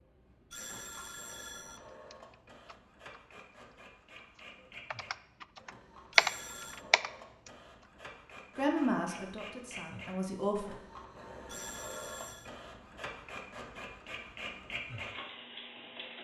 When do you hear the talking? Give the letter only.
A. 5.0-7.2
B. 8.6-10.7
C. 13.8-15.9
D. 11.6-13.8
B.